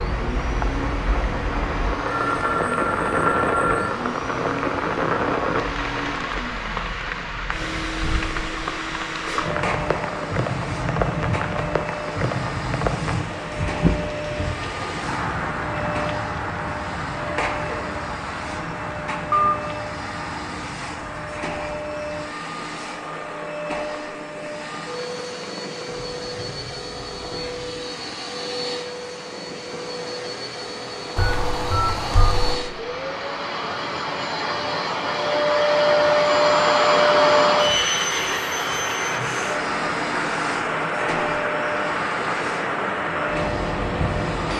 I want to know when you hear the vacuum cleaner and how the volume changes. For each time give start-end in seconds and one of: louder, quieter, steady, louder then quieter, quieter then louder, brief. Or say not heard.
0.0-44.5 louder.